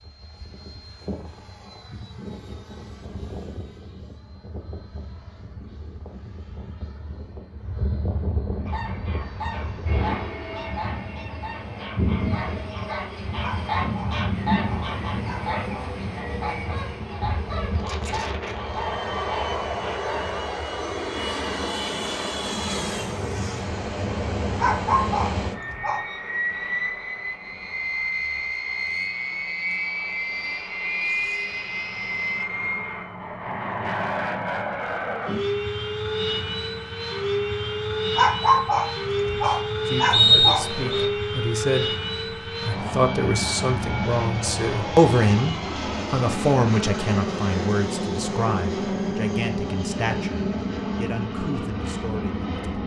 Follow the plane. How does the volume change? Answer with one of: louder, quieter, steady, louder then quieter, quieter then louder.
louder.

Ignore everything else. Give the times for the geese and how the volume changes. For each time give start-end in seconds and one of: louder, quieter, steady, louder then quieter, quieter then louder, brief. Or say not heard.
8.7-20.4 louder then quieter.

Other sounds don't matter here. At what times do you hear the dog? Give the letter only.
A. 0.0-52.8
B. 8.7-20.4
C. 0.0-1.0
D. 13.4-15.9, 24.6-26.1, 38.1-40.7
D.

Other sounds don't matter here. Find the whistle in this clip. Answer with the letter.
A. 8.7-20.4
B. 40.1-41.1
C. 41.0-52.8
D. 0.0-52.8
B.